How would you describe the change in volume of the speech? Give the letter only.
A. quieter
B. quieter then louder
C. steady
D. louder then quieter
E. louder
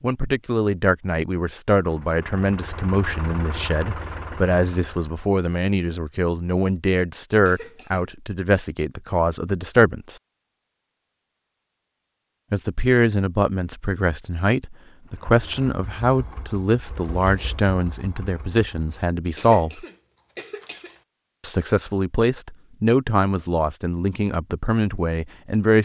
C.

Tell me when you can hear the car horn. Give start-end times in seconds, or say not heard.
not heard.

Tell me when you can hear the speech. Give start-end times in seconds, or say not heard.
0.0-10.2, 12.5-19.9, 21.4-25.7.